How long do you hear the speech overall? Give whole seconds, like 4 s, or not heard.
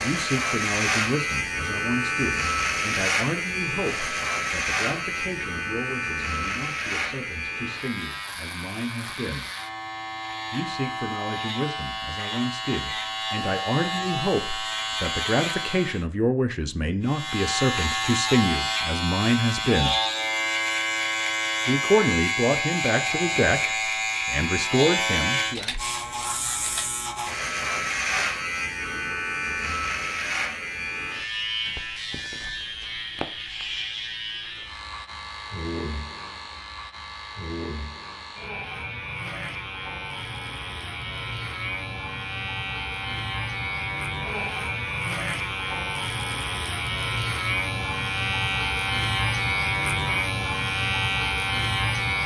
23 s.